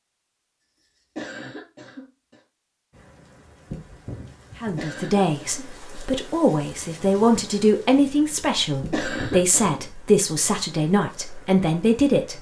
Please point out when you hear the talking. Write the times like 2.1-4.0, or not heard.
4.6-12.3.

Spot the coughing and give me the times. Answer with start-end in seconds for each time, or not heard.
0.8-2.4, 4.6-6.1, 8.8-9.8.